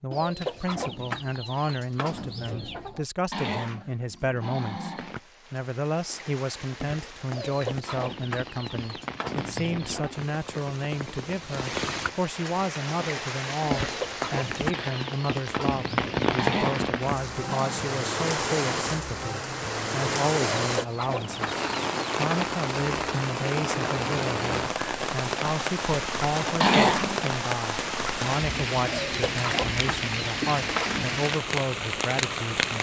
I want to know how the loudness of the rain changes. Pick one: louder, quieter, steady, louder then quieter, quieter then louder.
louder.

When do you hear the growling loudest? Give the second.
27 s.